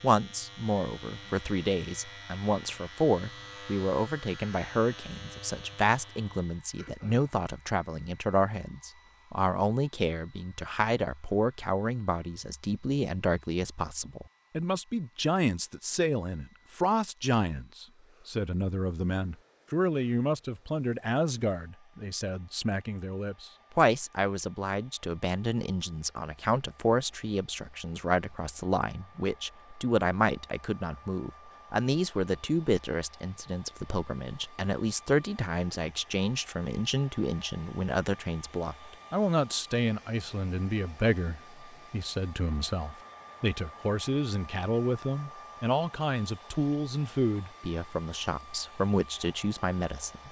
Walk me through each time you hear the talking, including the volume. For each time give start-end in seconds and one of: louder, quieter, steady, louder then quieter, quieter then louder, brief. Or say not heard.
0.0-50.2 steady.